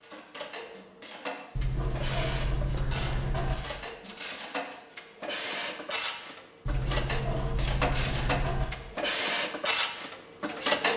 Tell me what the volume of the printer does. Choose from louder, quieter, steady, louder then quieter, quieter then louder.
louder.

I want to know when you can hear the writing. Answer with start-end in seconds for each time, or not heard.
1.6-3.5, 6.7-8.7.